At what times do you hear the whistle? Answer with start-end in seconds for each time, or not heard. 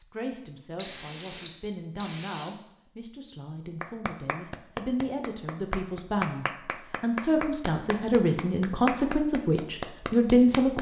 0.8-2.5.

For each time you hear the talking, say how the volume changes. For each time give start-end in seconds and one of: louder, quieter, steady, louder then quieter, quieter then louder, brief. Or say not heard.
0.0-10.7 louder.